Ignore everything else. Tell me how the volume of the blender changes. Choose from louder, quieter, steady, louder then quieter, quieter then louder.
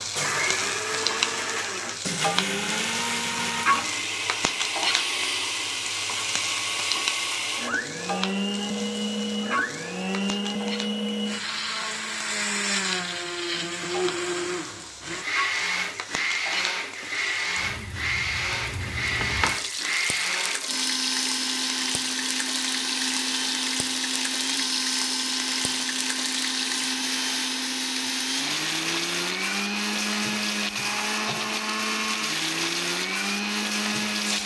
steady.